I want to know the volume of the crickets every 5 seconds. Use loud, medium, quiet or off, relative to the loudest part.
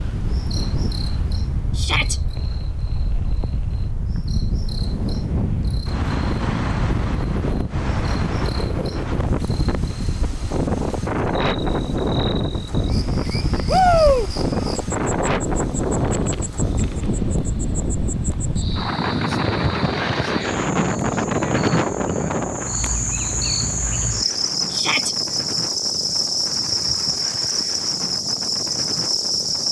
quiet, quiet, quiet, quiet, loud, loud.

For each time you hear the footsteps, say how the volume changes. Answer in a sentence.
You can't hear the footsteps here.